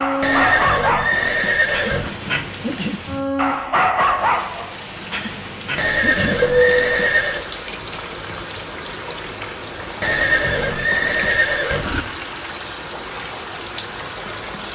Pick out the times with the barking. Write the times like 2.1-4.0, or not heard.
0.0-7.2.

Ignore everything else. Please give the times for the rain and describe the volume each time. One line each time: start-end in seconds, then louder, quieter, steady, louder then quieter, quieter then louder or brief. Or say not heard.
0.0-14.7 steady.